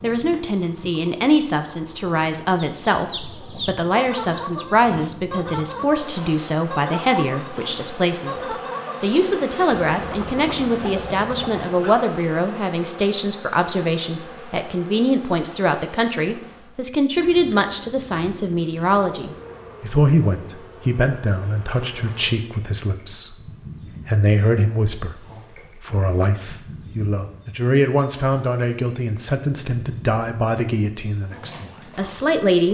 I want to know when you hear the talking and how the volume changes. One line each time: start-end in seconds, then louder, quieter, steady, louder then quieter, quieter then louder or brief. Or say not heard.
0.0-32.6 steady.